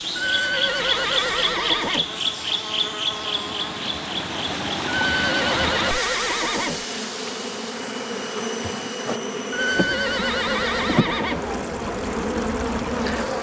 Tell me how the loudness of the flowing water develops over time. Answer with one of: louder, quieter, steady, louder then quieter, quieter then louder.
louder then quieter.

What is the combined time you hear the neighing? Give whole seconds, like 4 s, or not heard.
6 s.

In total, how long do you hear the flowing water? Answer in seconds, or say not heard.
13 s.